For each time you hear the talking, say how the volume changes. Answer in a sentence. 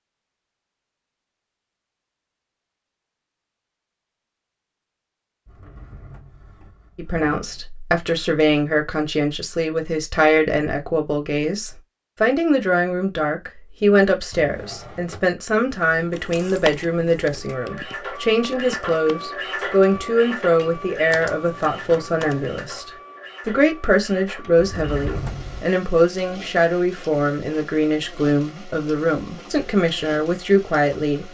You can hear the talking from 7.0 to 31.2 s, at a steady volume.